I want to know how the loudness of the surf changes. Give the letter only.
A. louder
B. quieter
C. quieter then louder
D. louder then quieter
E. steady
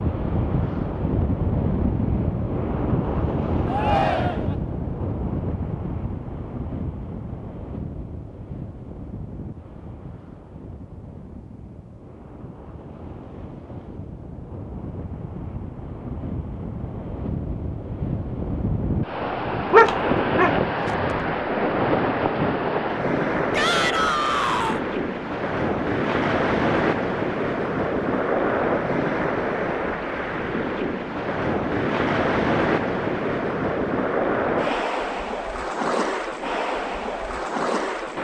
C.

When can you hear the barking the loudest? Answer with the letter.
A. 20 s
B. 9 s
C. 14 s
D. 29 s
A.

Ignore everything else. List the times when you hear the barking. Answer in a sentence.
The barking can be heard from 19.7 to 21.2 s.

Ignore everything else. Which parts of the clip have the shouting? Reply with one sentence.
The shouting can be heard from 3.6 to 4.5 s and from 23.5 to 24.8 s.